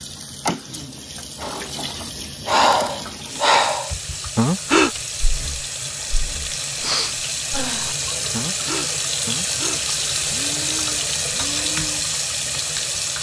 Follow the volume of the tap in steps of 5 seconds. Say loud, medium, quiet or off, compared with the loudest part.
medium, loud, loud.